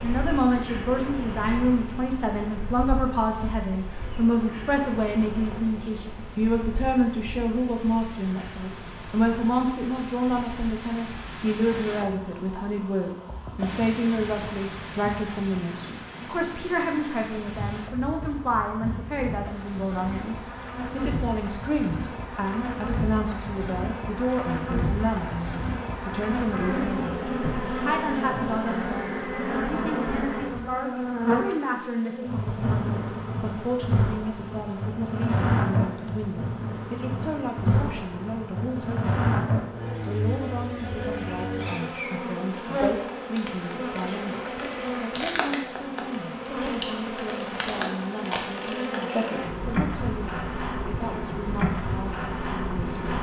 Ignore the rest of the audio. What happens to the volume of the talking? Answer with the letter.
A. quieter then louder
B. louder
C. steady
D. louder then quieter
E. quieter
E.